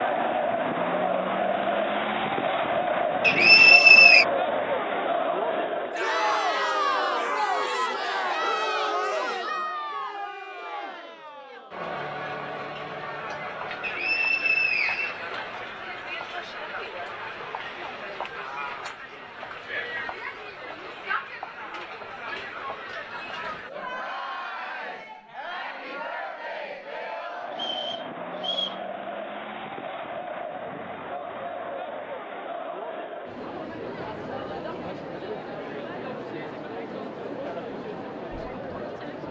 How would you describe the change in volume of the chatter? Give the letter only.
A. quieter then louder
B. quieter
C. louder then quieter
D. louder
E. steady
B.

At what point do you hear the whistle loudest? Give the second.
4 s.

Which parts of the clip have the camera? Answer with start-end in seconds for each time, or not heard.
not heard.